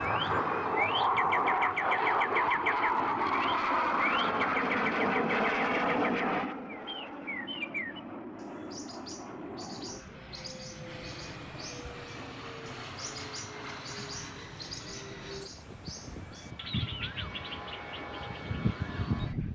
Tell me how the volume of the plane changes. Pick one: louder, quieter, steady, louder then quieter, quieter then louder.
quieter.